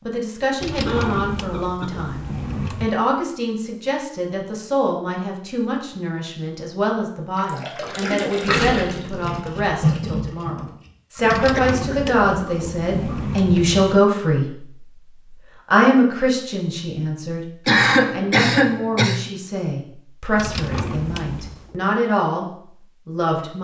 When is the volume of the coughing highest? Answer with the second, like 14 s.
18 s.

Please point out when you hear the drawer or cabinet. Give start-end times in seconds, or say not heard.
0.6-3.0, 11.2-14.0, 20.4-21.8.